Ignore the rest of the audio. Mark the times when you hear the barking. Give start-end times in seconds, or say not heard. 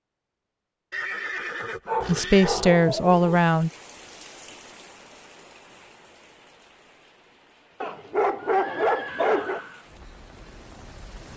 1.9-3.4, 7.8-9.6.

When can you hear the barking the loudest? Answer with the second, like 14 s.
9 s.